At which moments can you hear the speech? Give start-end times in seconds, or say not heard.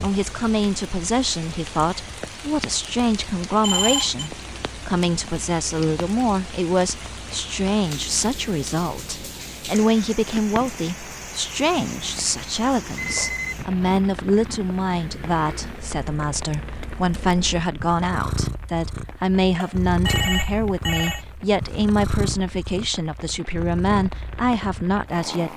0.0-25.5.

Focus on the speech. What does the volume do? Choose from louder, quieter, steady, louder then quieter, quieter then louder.
steady.